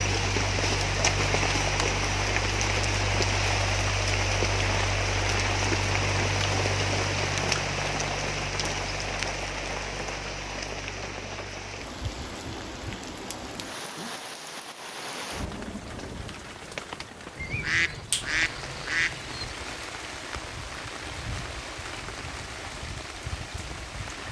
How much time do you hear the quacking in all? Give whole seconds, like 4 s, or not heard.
2 s.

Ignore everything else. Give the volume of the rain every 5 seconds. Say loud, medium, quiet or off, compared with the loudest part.
loud, loud, medium, medium, medium.